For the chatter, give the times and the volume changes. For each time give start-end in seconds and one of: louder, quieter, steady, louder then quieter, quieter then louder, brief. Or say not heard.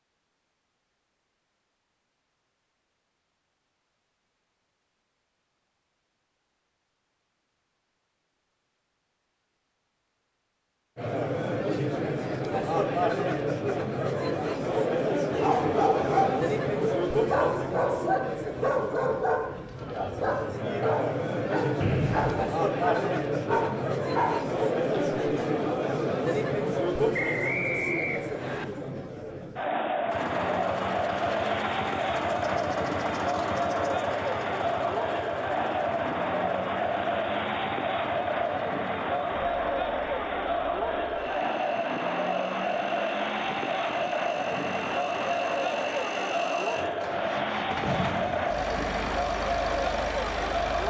10.9-50.8 steady.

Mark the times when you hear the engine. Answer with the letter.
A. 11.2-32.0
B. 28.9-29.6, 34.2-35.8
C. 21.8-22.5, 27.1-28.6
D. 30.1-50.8
D.